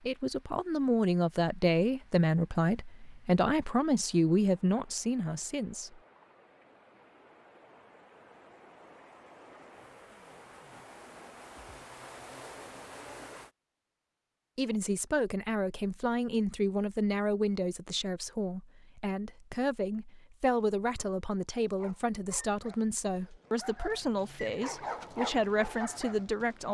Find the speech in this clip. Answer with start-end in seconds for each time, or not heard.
0.0-6.0, 14.6-26.6.